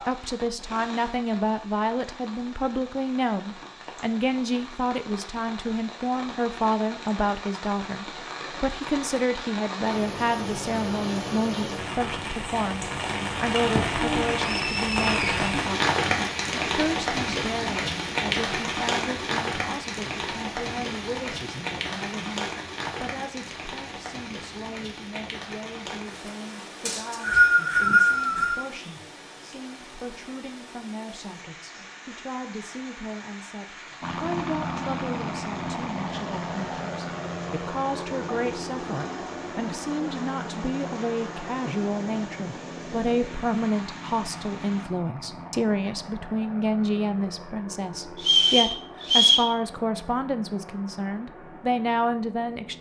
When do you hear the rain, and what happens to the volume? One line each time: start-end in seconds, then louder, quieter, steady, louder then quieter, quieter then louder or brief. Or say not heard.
0.0-44.9 louder then quieter.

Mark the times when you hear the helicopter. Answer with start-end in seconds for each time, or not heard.
34.0-52.7.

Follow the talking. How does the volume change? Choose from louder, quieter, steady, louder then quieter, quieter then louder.
quieter then louder.